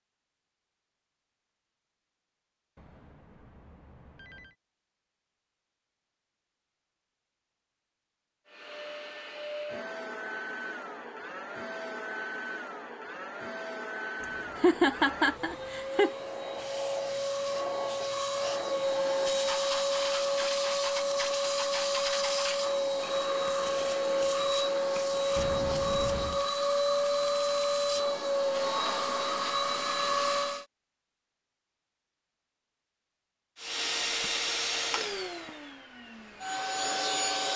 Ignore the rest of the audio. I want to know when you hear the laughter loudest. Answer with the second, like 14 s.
15 s.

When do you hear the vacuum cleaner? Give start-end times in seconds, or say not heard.
8.4-30.6, 33.5-37.5.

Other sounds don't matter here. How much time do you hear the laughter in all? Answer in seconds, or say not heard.
2 s.